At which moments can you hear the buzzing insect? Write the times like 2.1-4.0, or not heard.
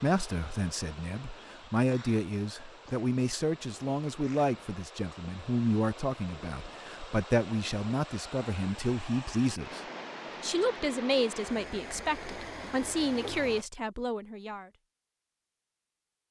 not heard.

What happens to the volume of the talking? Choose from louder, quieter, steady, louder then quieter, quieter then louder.
steady.